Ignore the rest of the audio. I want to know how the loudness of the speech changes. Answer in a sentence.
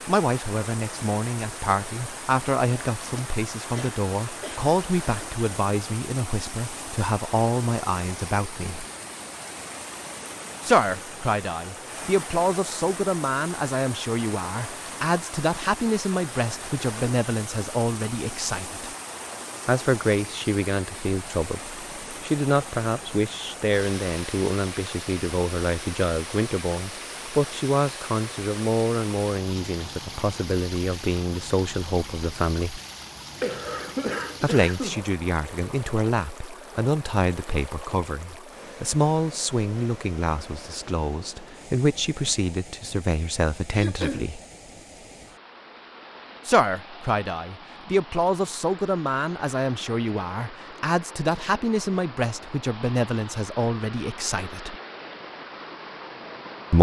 The loudness of the speech stays about the same.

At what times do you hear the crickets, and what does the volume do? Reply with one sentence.
You can't hear the crickets here.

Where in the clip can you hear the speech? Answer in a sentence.
The speech can be heard from 0.1 to 8.8 s, from 10.6 to 18.9 s, from 19.6 to 32.8 s, from 34.4 to 44.4 s and from 46.5 to 54.8 s.